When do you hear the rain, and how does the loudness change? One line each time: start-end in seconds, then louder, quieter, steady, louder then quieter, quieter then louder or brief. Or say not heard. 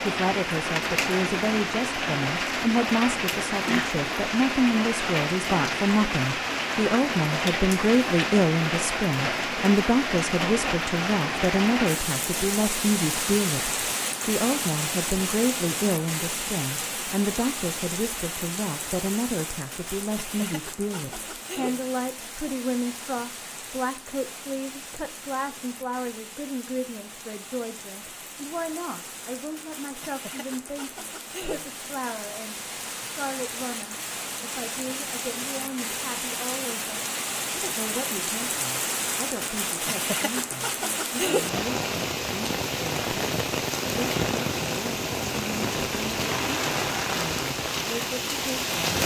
0.0-49.0 quieter then louder.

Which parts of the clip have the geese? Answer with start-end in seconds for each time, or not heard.
not heard.